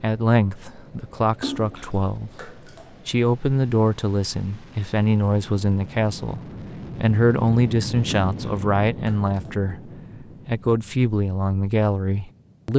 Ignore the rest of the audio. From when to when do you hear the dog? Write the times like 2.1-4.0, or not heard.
not heard.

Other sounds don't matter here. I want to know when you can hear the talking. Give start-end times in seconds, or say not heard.
0.0-9.8, 10.4-12.7.